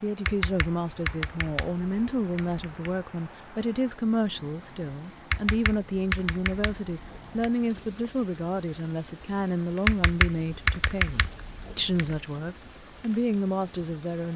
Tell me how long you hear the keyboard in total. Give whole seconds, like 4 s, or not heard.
7 s.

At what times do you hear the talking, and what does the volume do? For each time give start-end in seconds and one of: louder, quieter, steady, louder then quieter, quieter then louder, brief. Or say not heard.
0.0-14.3 steady.